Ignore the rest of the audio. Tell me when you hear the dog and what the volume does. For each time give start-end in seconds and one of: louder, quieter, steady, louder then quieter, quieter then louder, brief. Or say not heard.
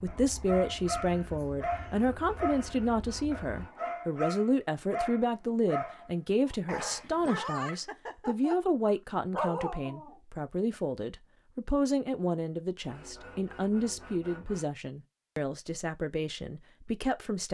0.1-10.2 steady.